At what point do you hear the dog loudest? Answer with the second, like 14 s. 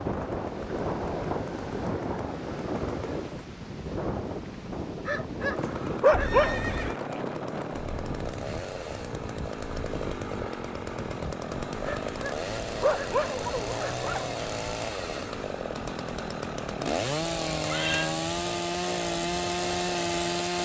6 s.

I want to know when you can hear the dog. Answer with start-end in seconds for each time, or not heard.
5.0-6.6, 11.8-14.3.